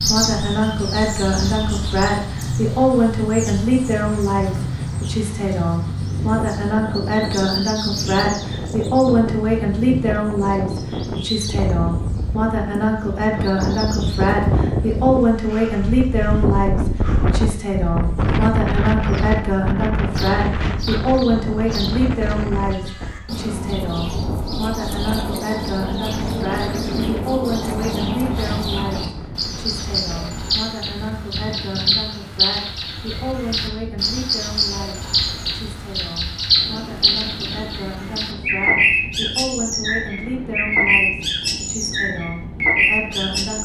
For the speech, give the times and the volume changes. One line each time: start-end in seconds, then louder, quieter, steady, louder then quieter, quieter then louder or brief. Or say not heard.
0.0-43.6 quieter.